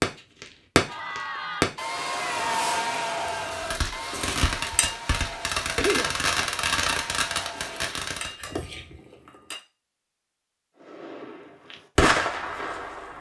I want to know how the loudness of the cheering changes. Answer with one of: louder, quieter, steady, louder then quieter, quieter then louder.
quieter.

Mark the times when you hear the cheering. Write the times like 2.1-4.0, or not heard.
0.8-7.9.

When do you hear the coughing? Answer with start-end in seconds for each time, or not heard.
5.8-6.2.